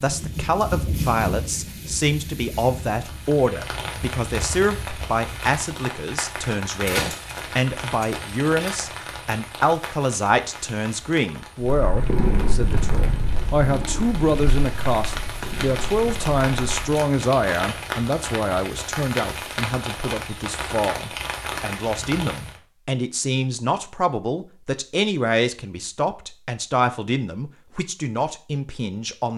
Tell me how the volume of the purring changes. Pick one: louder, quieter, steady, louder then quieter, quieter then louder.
quieter.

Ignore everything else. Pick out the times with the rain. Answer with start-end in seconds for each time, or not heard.
0.0-22.6.